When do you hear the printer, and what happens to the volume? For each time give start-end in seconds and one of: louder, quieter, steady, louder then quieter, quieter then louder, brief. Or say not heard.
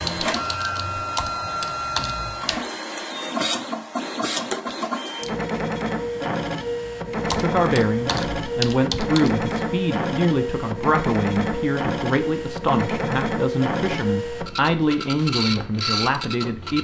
0.0-16.7 steady.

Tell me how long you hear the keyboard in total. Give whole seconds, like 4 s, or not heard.
5 s.